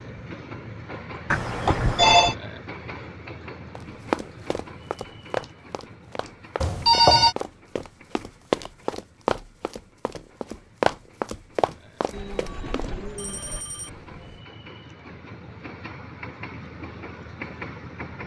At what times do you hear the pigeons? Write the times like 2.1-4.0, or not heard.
12.1-13.6.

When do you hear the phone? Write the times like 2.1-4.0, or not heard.
1.3-2.4, 6.6-7.3, 13.2-14.4.